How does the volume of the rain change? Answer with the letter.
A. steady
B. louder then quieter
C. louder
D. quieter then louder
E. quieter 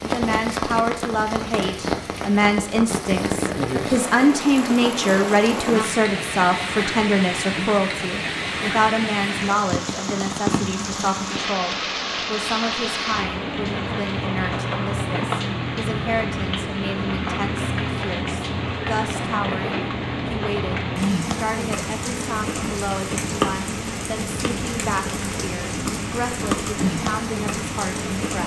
A.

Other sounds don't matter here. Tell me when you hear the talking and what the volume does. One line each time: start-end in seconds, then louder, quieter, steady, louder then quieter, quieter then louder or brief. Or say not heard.
0.0-28.4 quieter.